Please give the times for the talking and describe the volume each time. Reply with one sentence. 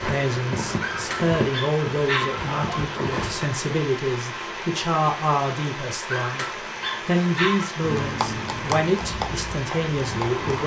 You can hear the talking from 0.0 to 10.6 s, at a steady volume.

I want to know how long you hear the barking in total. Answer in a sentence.
You can hear the barking for 4 seconds altogether.